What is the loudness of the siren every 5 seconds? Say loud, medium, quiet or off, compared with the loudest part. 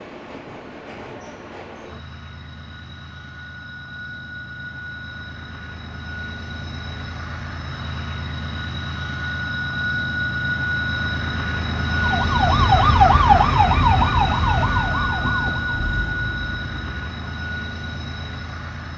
off, off, loud, quiet.